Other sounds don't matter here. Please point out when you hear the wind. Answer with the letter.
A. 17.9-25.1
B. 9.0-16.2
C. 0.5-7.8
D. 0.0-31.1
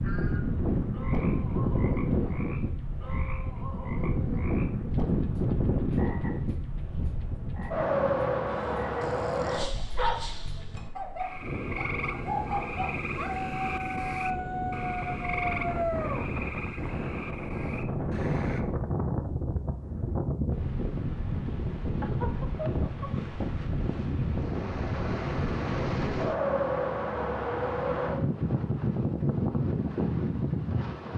D.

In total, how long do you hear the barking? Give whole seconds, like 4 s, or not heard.
7 s.